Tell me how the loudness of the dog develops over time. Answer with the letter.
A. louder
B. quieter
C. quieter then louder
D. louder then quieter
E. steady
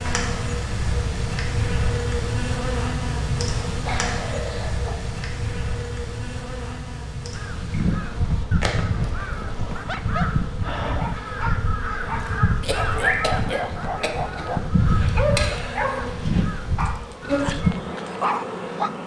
A.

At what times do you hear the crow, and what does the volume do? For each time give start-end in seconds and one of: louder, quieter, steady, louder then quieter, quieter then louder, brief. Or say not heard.
7.3-17.8 steady.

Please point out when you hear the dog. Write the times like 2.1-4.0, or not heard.
9.8-18.9.